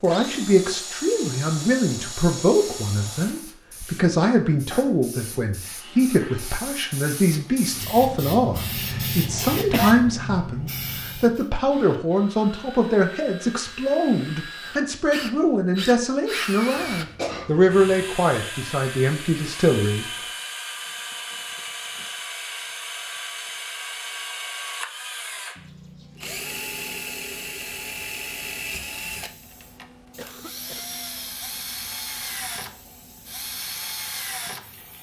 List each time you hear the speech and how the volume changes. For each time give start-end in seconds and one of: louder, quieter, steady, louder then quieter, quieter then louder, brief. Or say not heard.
0.0-20.1 steady.